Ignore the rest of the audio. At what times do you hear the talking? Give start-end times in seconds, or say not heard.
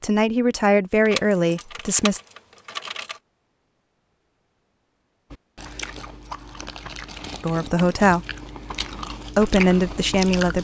0.0-2.2, 7.4-8.2, 9.3-10.5.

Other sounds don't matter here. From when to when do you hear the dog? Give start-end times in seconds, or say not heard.
not heard.